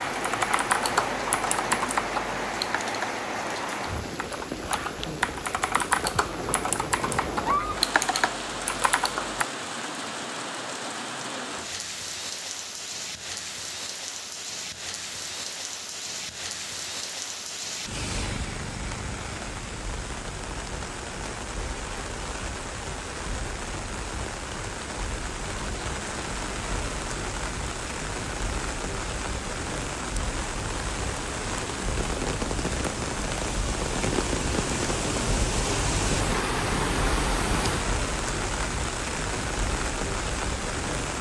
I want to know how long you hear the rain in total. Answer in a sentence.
You can hear the rain for 41 seconds altogether.